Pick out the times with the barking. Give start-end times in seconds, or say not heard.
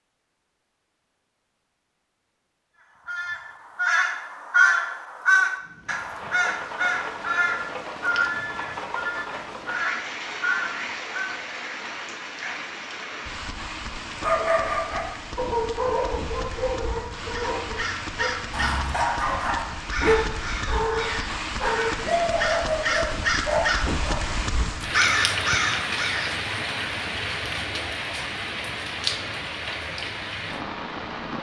14.2-24.2.